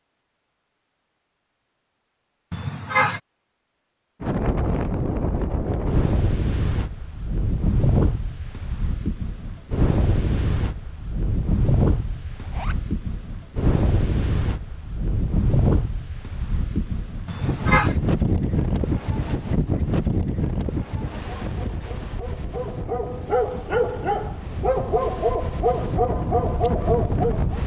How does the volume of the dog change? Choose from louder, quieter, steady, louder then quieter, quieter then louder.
louder.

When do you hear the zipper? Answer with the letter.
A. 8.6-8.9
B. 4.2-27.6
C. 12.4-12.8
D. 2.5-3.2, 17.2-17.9
C.